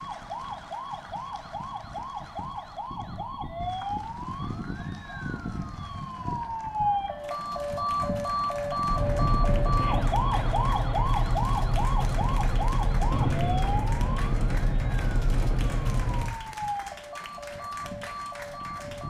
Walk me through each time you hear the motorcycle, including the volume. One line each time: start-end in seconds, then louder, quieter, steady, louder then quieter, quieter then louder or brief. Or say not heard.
8.8-16.4 steady.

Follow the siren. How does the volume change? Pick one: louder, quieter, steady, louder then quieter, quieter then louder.
louder then quieter.